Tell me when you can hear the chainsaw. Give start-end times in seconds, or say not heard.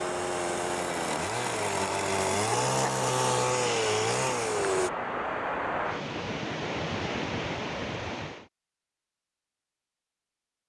0.0-4.9.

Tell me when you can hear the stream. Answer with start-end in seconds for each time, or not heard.
0.0-8.5.